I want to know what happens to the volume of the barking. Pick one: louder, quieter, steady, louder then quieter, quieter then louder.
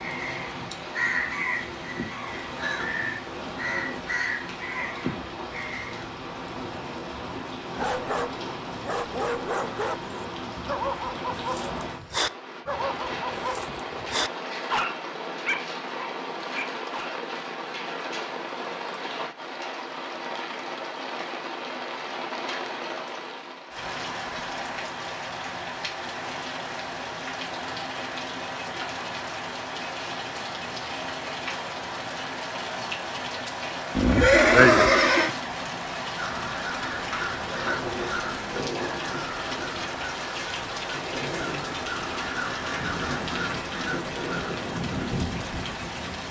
steady.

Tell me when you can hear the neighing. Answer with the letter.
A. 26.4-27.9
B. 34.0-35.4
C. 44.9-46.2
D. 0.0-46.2
B.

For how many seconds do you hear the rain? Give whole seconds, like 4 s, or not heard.
46 s.